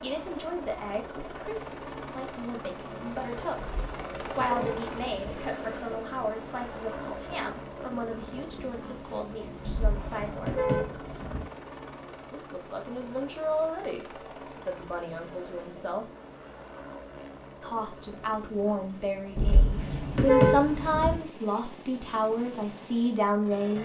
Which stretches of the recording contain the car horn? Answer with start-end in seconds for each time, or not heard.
3.5-5.2, 9.6-11.4, 19.4-21.2.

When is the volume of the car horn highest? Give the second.
20 s.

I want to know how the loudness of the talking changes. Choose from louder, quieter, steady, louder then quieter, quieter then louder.
louder.